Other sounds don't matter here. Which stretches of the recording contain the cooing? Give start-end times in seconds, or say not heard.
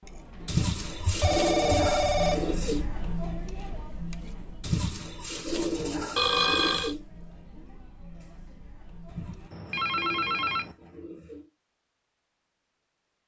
0.5-2.9, 4.6-7.0, 9.1-11.5.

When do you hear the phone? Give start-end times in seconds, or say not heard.
1.0-2.5, 6.2-7.0, 9.5-10.8.